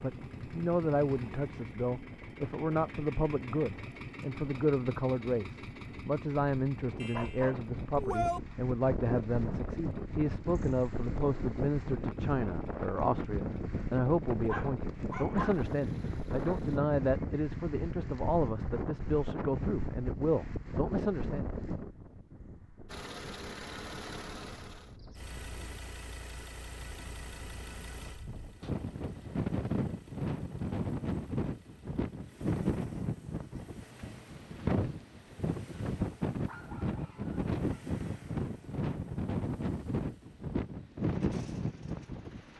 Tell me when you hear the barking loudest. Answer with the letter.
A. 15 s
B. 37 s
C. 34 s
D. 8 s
D.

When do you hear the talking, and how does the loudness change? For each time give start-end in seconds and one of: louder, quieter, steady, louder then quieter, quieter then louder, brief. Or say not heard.
0.0-21.4 steady.